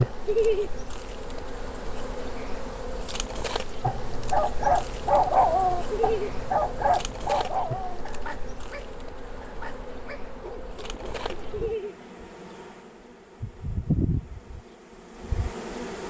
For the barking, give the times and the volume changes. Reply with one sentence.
You can hear the barking from 3.8 to 11.8 s, getting quieter.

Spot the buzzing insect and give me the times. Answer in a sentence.
The buzzing insect can be heard from 0.0 to 16.0 s.